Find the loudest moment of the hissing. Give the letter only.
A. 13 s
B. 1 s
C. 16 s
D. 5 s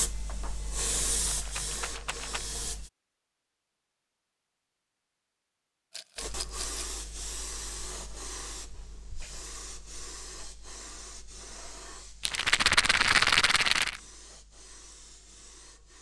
B.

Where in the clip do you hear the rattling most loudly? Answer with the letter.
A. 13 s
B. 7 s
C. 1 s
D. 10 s
A.